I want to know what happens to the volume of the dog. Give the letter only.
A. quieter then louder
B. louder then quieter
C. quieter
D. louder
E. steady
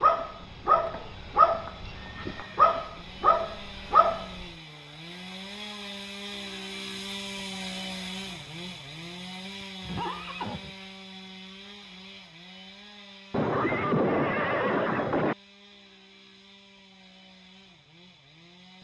A.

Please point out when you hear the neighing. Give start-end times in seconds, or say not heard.
0.4-2.8, 9.8-10.8, 13.3-15.3.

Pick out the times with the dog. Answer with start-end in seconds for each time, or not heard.
0.0-4.5.